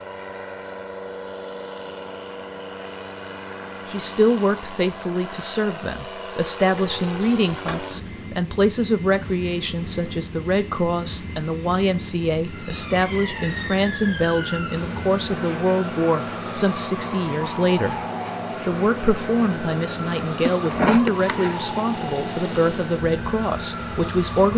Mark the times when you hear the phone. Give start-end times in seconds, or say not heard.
not heard.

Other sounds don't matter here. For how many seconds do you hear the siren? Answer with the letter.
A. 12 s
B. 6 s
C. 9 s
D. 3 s
A.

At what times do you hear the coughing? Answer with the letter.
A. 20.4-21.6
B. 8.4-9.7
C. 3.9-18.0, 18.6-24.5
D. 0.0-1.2
A.